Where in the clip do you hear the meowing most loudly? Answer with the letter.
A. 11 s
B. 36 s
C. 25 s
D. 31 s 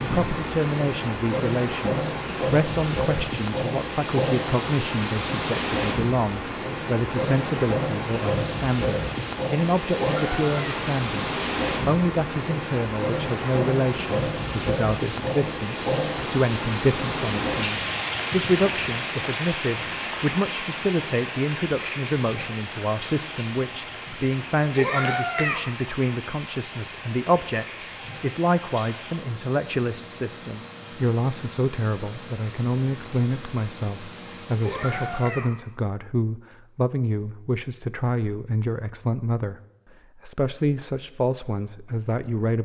C.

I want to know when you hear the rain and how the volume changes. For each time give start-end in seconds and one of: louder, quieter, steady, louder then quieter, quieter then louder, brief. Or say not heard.
0.0-35.3 quieter.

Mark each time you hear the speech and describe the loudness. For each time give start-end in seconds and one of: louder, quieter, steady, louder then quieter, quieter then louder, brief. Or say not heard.
0.0-39.5 steady
40.1-42.5 brief.